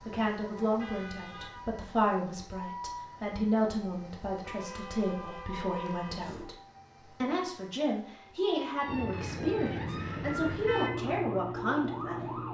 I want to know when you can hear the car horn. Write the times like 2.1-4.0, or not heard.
0.8-1.6, 4.4-6.5, 8.8-10.9.